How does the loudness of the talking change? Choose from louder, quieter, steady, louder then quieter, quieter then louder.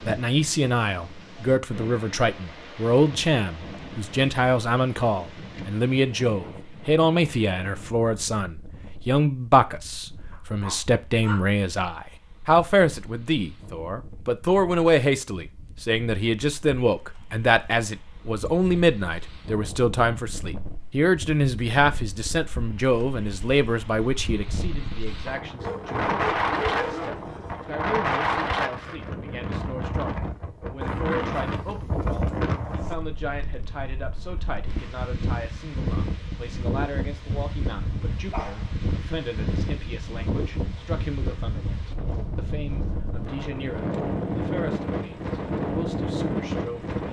quieter.